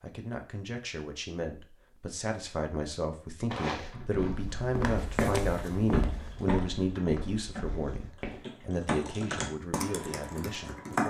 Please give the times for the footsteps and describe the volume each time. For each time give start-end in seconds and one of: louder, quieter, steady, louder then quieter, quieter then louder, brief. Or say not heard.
3.5-8.4 louder then quieter.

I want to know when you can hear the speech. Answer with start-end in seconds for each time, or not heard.
0.0-11.0.